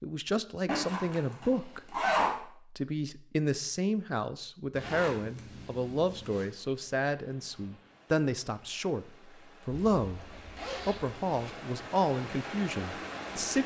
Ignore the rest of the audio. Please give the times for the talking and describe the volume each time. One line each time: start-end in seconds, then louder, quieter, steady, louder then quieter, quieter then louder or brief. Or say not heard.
0.0-13.6 steady.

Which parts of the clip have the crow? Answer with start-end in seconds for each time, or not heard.
not heard.